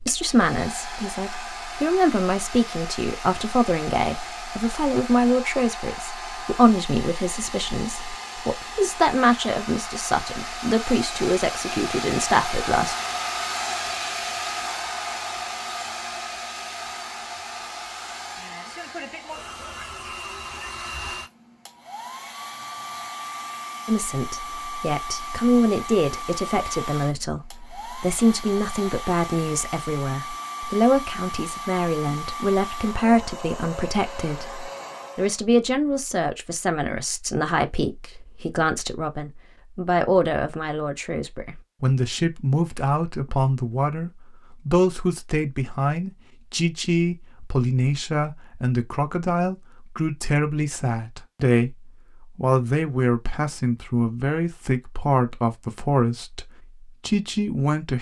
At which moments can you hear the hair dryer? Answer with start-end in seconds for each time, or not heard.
0.0-35.4.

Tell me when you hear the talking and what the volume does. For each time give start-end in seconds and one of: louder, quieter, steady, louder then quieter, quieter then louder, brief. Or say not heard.
0.0-12.9 steady
23.9-51.8 steady
52.4-56.5 steady
57.0-57.9 brief.